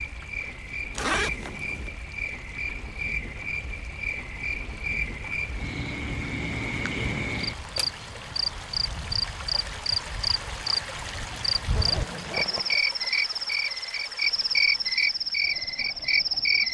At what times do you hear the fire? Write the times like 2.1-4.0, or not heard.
not heard.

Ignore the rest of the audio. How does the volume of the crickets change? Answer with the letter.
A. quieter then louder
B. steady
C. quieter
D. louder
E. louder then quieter
D.